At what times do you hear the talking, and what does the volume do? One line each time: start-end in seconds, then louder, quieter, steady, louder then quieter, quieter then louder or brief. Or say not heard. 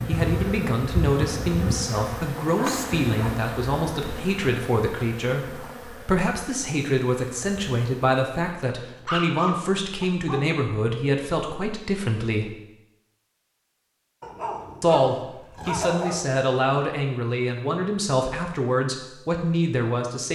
0.1-12.5 steady
14.8-20.3 steady.